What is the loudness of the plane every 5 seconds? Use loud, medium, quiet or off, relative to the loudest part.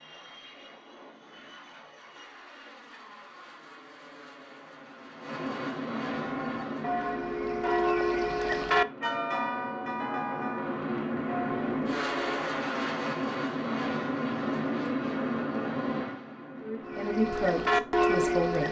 quiet, medium, loud, loud.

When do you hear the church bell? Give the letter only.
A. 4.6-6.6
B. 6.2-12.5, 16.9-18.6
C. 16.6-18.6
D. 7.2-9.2
B.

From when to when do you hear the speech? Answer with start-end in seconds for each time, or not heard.
16.6-18.6.